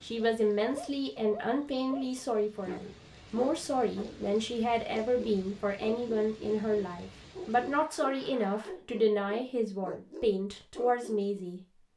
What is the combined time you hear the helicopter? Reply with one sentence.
You can't hear the helicopter here.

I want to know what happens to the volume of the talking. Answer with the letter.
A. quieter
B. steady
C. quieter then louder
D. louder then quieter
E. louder
B.